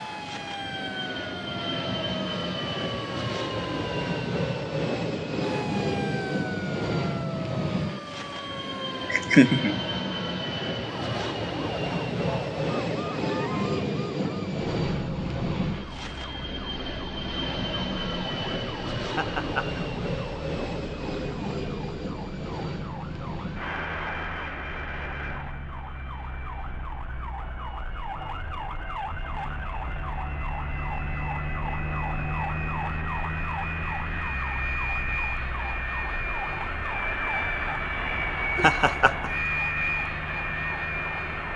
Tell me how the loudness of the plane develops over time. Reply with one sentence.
The volume of the plane goes down, then up.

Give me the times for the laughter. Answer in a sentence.
The laughter can be heard from 9.1 to 9.8 s, from 19.1 to 19.8 s and from 38.5 to 39.3 s.